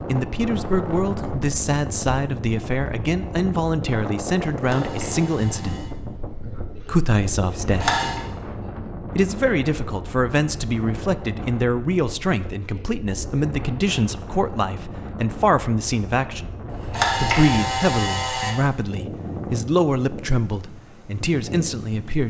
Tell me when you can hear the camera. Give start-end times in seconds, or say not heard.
4.5-5.9, 7.6-8.2, 16.7-18.5.